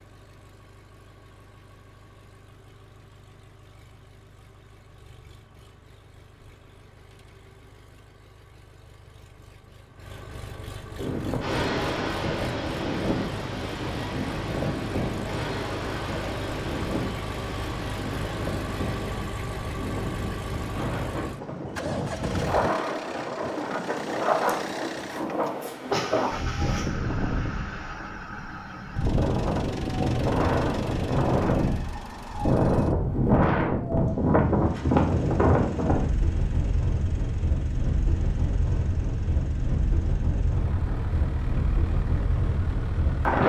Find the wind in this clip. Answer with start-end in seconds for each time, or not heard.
10.9-43.4.